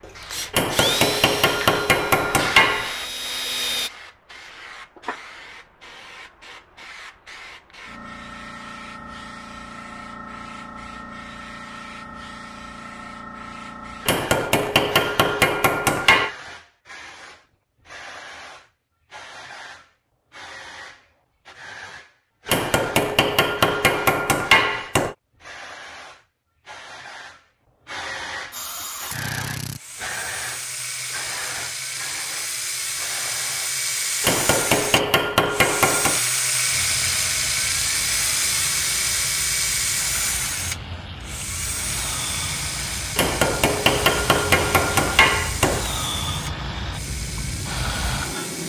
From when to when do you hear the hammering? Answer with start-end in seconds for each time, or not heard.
0.5-3.0, 14.1-16.4, 22.4-25.1, 34.2-36.3, 43.1-45.9.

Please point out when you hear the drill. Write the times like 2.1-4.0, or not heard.
0.0-3.9, 28.5-48.6.